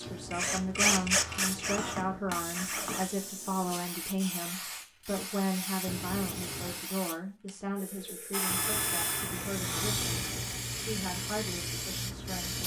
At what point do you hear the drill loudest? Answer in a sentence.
The volume of the drill peaks at 1 second.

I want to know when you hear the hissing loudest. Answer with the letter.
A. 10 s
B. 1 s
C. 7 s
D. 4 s
A.